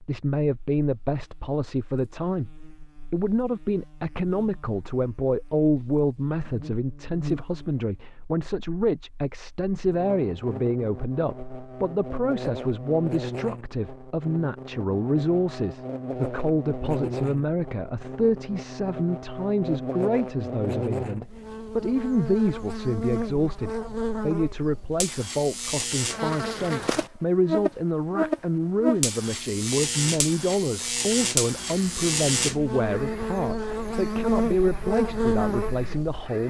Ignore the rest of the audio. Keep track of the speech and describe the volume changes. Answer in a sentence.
The volume of the speech stays about the same.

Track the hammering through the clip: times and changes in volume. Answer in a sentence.
You can't hear the hammering here.